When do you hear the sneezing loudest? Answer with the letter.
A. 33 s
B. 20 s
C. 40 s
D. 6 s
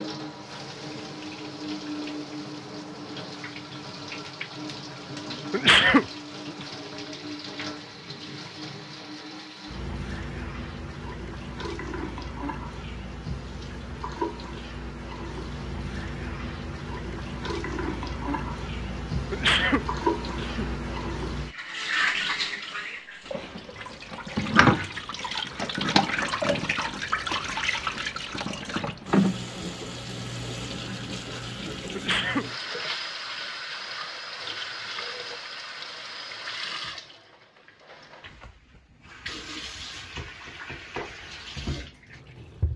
D.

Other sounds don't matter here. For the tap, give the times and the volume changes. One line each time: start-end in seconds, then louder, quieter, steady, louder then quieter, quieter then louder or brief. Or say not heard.
0.0-42.7 louder then quieter.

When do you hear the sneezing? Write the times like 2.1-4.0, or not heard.
5.5-6.7, 19.3-20.6, 31.9-32.5.